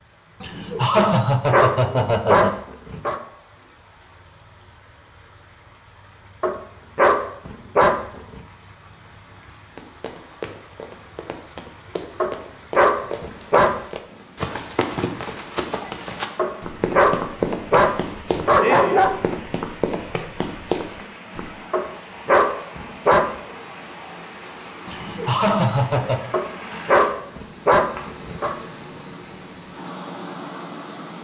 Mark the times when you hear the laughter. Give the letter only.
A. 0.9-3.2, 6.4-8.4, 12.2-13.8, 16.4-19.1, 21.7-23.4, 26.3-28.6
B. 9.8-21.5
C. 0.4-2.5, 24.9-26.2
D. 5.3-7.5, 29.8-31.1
C.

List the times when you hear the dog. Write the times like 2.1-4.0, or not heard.
0.9-3.2, 6.4-8.4, 12.2-13.8, 16.4-19.1, 21.7-23.4, 26.3-28.6.